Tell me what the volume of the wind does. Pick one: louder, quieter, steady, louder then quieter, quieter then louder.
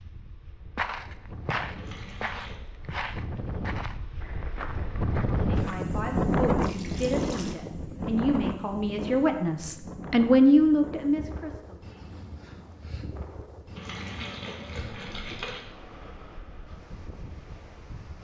louder then quieter.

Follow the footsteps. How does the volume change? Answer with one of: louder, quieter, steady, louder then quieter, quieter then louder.
quieter.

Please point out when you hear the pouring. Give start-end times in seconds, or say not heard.
1.8-2.6, 6.5-7.5, 13.8-15.7.